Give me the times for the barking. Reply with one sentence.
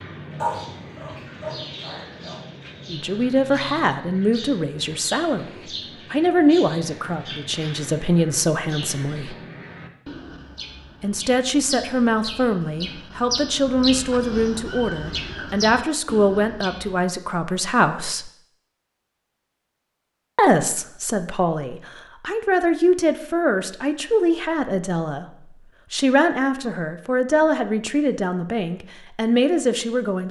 The barking can be heard from 0.4 to 2.4 s.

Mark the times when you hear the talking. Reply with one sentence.
You can hear the talking from 2.9 to 5.5 s, from 6.1 to 9.3 s, from 11.0 to 18.3 s, from 20.4 to 25.2 s and from 25.9 to 30.2 s.